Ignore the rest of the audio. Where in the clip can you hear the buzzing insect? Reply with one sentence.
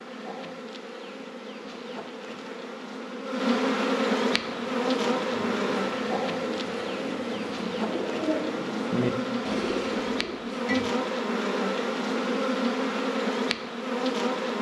You can hear the buzzing insect from 0.0 to 14.5 s.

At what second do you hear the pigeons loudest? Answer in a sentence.
The loudest moment of the pigeons is at 9 seconds.